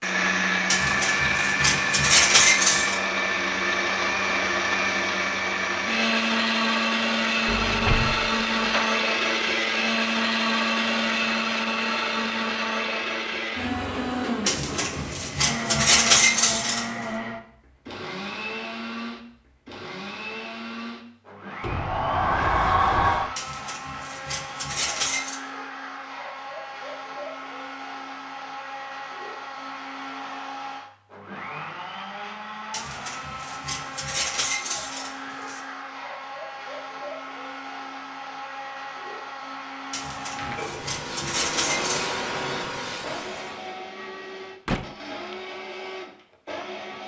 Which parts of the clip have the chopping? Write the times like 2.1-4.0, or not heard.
not heard.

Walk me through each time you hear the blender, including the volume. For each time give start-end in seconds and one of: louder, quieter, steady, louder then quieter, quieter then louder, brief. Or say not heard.
0.0-47.0 quieter.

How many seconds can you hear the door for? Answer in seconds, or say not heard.
4 s.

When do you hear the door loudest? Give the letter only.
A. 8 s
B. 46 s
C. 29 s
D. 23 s
D.